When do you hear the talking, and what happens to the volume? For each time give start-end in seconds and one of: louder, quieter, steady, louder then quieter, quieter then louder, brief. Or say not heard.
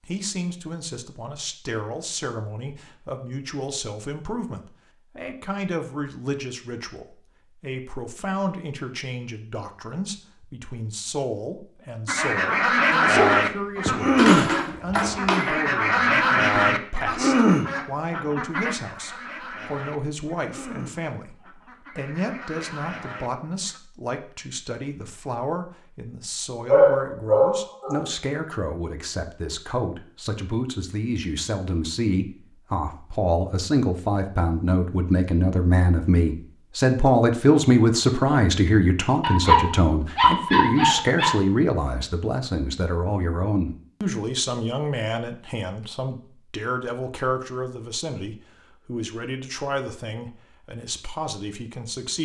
0.0-52.1 louder then quieter.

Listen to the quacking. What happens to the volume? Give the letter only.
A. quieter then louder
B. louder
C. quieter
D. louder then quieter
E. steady
C.